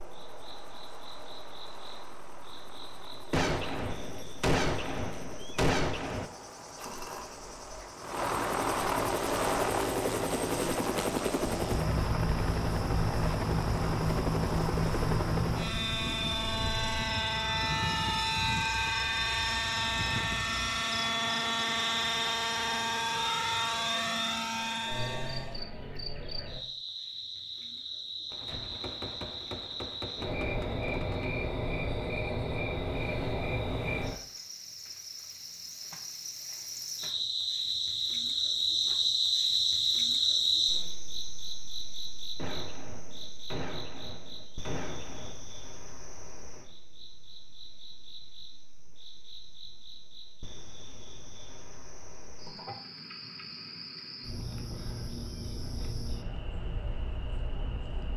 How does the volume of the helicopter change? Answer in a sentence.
The volume of the helicopter goes up.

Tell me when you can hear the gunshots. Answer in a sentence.
The gunshots can be heard from 3.3 to 6.3 s, from 28.3 to 31.3 s and from 42.4 to 45.4 s.